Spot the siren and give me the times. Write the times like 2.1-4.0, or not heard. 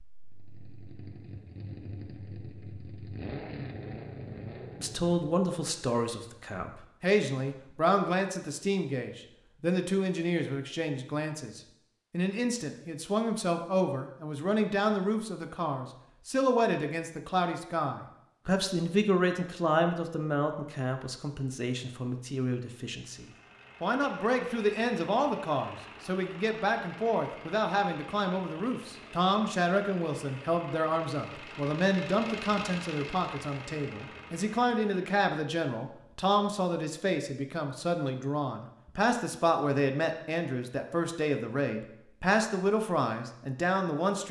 not heard.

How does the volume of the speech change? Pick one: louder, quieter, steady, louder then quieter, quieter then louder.
steady.